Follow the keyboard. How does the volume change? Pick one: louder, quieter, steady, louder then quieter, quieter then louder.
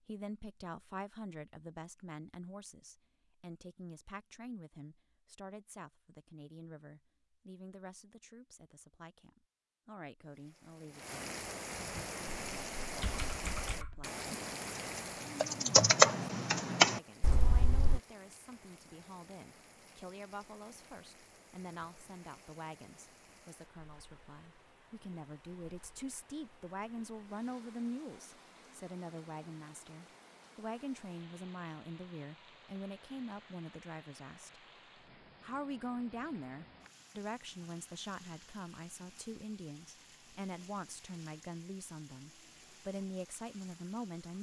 louder.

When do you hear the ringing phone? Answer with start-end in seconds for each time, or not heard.
not heard.